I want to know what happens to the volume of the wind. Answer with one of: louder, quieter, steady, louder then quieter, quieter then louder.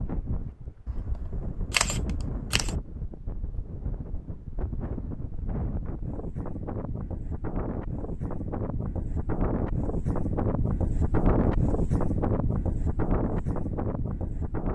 louder.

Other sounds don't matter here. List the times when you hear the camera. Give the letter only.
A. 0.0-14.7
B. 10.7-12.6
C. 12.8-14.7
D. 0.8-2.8
D.